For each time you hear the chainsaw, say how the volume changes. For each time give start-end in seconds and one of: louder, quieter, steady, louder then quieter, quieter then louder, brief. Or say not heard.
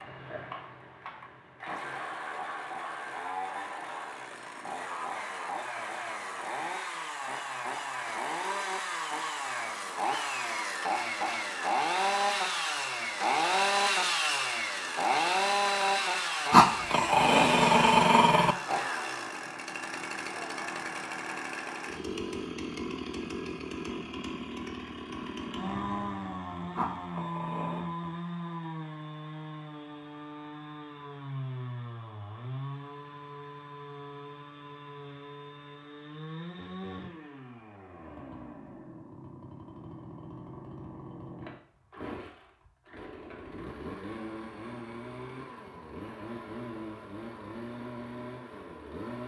0.0-49.2 louder then quieter.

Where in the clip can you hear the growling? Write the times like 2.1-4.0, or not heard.
16.5-18.6, 26.8-27.9.